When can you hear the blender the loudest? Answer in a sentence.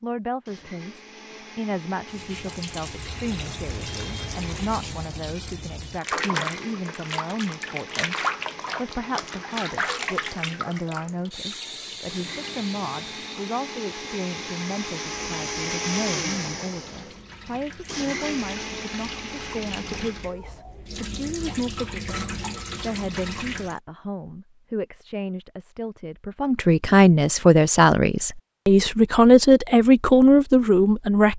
The loudest moment of the blender is at 16 seconds.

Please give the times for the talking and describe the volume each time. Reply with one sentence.
The talking can be heard from 0.0 to 31.3 s, getting louder.